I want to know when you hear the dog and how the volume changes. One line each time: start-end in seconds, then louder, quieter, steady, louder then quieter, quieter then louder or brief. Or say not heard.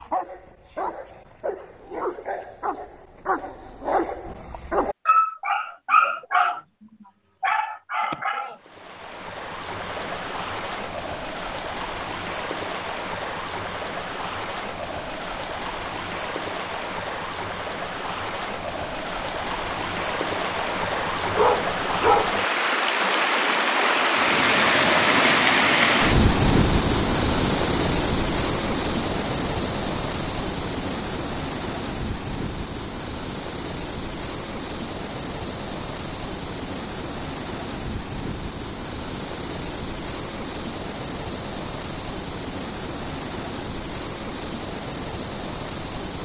0.0-6.6 louder
7.4-8.6 brief
21.4-22.3 brief.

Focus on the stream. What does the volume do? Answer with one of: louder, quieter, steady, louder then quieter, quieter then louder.
louder then quieter.